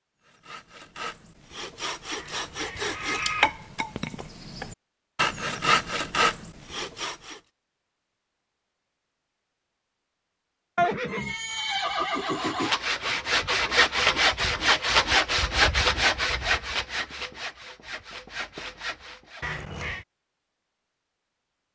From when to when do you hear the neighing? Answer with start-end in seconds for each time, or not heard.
2.1-3.5, 10.8-12.8, 19.4-20.1.